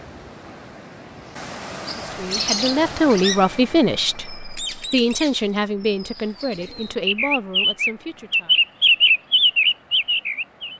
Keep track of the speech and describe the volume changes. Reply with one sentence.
The volume of the speech goes down.